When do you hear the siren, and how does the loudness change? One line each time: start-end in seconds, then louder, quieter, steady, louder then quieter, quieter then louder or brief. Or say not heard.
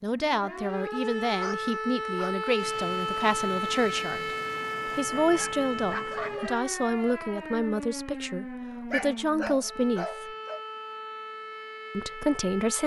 0.0-12.8 quieter.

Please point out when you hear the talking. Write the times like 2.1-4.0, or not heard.
0.0-4.3, 5.0-10.3, 11.9-12.8.